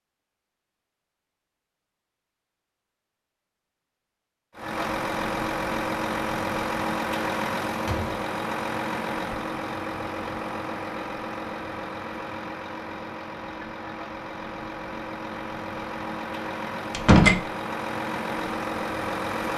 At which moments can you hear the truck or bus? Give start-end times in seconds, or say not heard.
4.5-19.5.